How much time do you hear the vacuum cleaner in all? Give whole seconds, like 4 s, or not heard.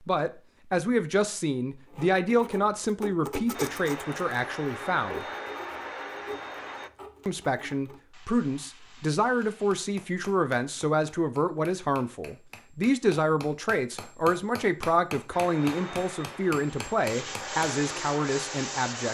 7 s.